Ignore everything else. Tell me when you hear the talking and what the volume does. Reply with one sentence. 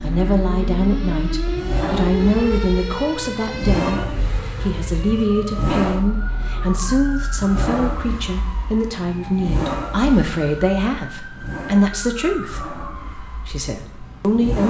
You can hear the talking from 0.0 to 14.6 s, at a steady volume.